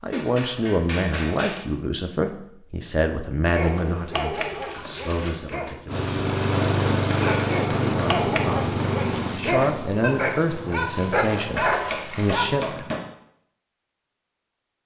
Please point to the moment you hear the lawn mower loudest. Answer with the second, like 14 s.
7 s.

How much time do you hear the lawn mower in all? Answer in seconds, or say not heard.
6 s.